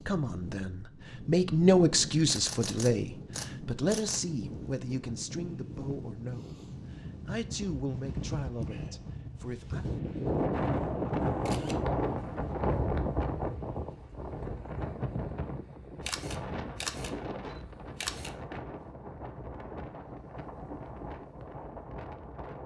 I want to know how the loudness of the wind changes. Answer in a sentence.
The volume of the wind goes up, then down.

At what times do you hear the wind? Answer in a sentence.
The wind can be heard from 0.0 to 22.6 s.